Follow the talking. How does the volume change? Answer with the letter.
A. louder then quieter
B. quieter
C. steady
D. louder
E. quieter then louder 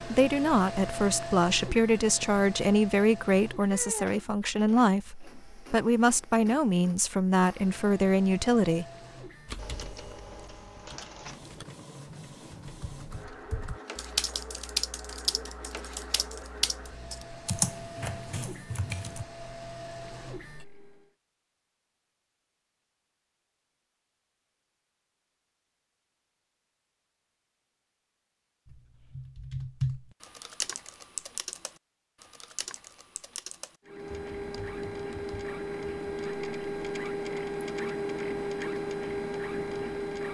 C.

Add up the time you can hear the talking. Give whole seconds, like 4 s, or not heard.
9 s.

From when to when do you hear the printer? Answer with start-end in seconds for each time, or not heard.
0.0-21.1, 33.9-40.3.